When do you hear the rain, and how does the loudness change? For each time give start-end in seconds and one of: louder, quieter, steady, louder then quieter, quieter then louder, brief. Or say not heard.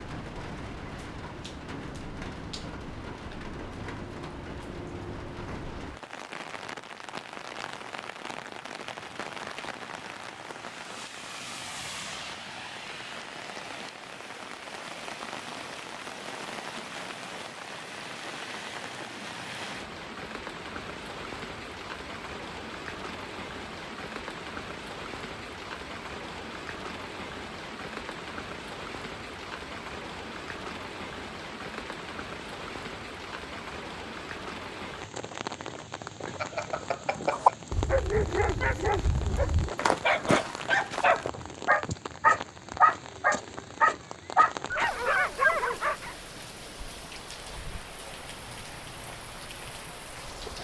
0.0-50.5 steady.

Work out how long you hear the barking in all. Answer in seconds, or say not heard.
9 s.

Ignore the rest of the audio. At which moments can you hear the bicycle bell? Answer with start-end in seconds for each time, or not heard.
36.4-37.5.